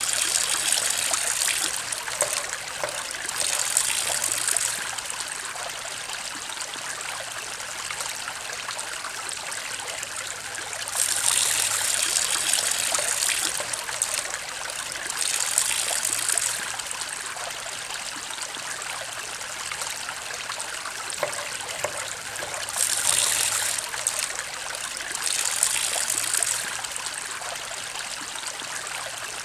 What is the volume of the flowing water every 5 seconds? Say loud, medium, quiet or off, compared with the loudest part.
loud, medium, loud, loud, loud, loud.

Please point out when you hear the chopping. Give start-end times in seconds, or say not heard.
2.1-4.4, 12.9-15.1, 21.1-23.4.